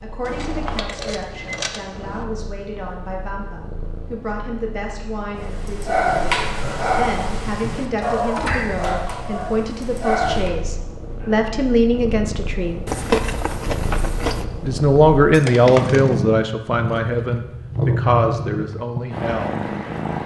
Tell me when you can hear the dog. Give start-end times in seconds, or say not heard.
5.3-10.5.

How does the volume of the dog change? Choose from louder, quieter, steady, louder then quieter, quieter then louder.
quieter.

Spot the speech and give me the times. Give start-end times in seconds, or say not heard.
0.0-12.8, 14.6-19.6.